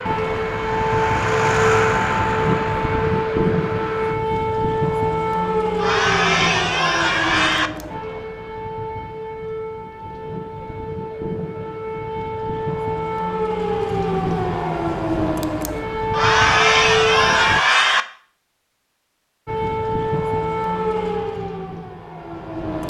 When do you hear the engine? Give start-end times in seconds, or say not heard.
0.0-4.2.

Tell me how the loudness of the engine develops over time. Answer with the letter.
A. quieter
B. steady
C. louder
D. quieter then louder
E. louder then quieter
E.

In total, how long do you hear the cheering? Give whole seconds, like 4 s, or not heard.
4 s.